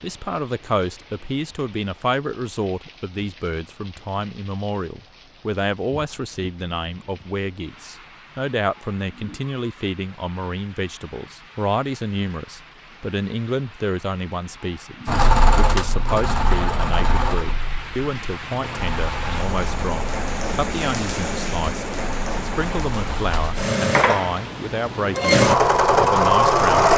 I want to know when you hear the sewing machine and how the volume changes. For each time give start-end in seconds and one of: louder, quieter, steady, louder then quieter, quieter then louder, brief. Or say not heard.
15.1-26.9 quieter then louder.